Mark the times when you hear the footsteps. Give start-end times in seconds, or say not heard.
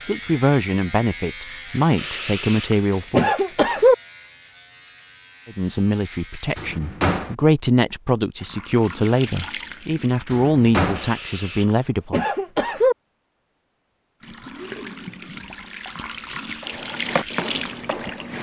16.6-18.3.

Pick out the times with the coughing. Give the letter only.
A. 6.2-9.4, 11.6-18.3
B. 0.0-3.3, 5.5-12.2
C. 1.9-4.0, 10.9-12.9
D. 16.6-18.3
C.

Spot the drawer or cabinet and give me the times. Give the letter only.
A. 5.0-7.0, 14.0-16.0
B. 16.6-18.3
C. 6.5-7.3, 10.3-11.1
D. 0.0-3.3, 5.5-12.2
C.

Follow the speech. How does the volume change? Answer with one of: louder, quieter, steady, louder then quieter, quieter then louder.
steady.